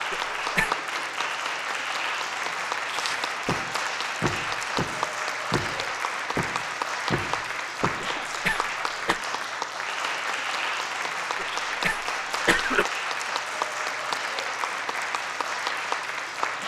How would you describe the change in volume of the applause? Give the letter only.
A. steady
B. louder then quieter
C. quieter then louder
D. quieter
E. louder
A.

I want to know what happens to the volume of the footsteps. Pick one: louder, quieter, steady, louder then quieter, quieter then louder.
steady.